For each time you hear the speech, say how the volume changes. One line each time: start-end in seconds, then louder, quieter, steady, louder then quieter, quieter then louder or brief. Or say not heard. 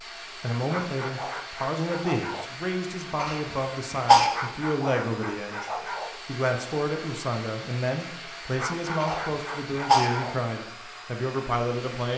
0.2-12.1 steady.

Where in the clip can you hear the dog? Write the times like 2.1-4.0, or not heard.
0.7-2.5, 4.3-6.2, 8.6-10.4.